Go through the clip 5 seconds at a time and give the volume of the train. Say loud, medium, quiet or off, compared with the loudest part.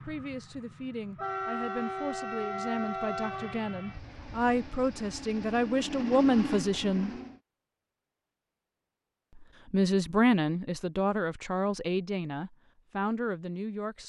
loud, loud, off.